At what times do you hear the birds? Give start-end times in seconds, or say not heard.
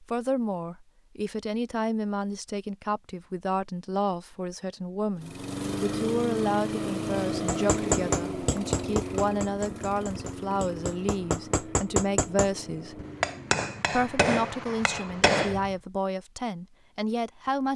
not heard.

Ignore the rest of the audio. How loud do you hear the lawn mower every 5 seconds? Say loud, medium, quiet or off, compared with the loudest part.
off, loud, medium, off.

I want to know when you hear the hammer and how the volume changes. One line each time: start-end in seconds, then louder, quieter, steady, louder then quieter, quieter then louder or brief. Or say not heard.
7.5-15.8 quieter then louder.